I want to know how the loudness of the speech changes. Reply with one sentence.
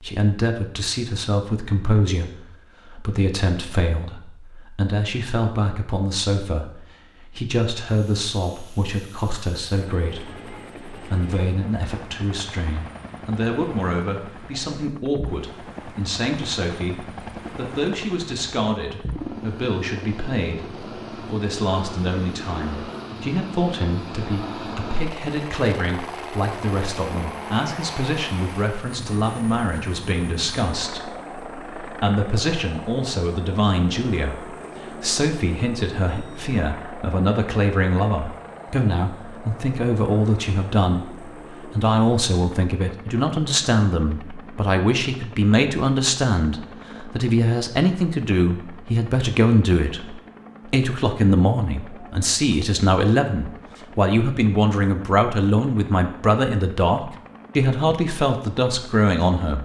The loudness of the speech goes up.